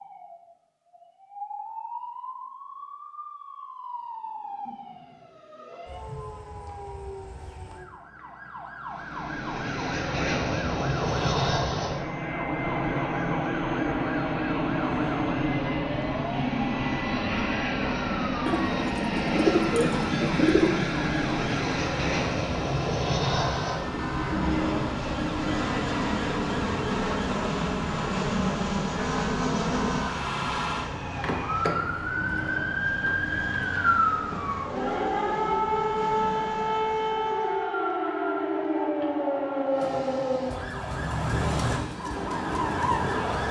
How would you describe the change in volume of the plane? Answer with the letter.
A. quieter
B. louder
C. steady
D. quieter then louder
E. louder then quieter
A.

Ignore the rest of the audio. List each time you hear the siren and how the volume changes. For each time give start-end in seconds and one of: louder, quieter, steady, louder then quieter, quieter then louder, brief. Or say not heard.
0.0-43.4 louder.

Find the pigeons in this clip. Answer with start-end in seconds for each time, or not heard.
18.4-20.7.